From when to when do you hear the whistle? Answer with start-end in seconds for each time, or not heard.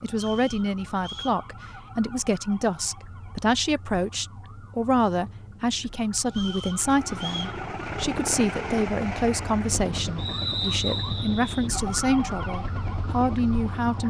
0.1-1.4, 6.2-7.6, 10.2-11.7.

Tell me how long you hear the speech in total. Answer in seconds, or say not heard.
14 s.